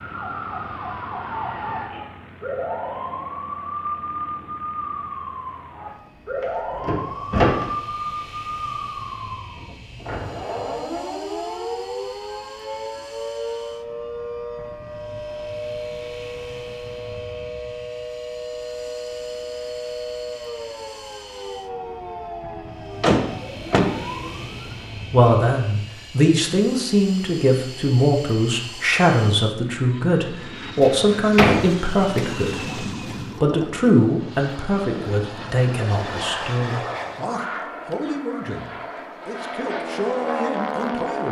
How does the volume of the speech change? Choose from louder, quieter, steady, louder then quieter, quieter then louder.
quieter.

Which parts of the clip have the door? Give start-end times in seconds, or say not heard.
6.4-7.7, 23.0-23.9, 30.8-33.1.